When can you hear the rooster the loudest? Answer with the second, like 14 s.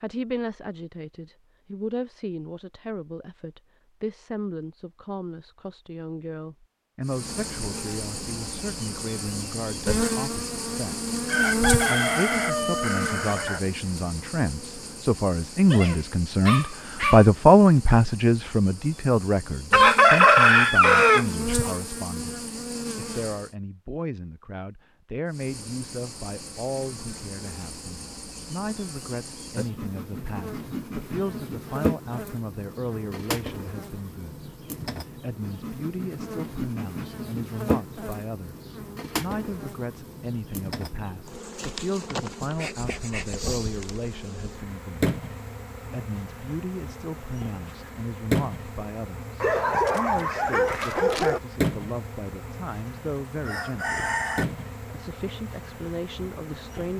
20 s.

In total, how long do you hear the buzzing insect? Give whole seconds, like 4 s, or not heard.
48 s.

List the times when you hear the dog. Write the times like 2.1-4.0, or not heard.
15.7-17.2, 49.4-51.4.